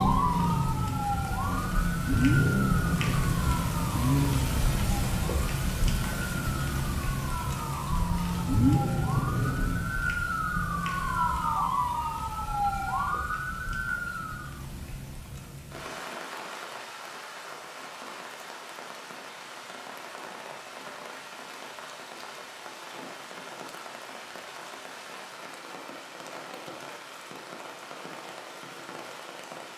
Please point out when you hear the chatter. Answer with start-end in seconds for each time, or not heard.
not heard.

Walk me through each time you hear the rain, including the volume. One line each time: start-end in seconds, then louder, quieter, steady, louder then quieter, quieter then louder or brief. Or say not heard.
0.0-29.7 quieter.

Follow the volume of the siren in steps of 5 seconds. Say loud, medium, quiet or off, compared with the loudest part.
loud, medium, loud, off, off, off.